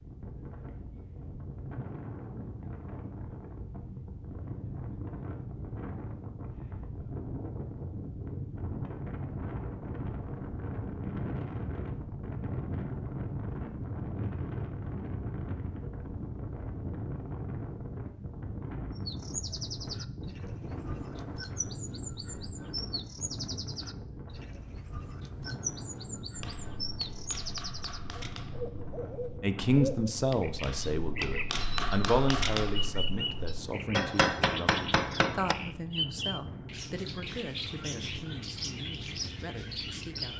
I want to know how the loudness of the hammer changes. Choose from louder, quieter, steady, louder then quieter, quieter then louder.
louder.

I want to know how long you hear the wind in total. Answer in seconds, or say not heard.
40 s.